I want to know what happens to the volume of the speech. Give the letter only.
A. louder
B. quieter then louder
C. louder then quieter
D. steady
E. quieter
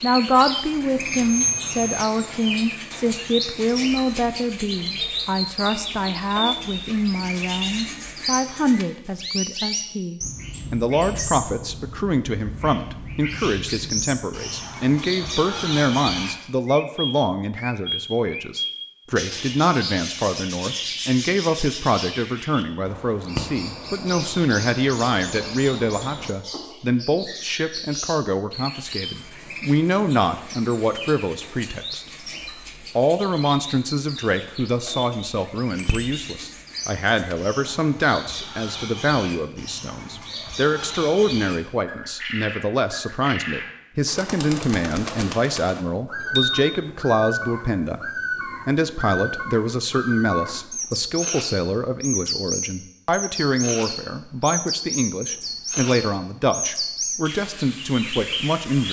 D.